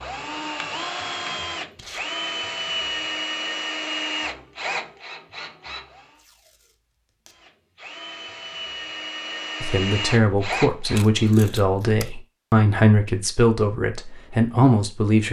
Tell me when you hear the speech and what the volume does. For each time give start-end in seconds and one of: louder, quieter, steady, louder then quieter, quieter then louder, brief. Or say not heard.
9.6-15.2 steady.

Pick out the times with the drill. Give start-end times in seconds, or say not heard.
0.0-6.2, 7.3-11.3.